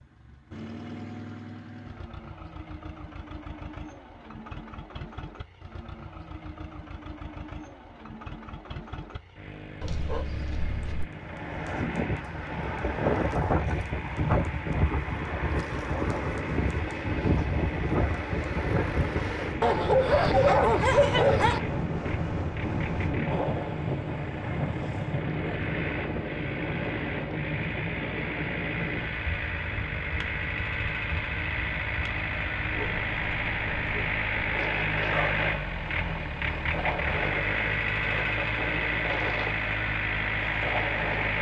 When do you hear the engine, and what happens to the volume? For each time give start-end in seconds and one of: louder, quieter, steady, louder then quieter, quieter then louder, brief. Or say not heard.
0.0-41.3 louder.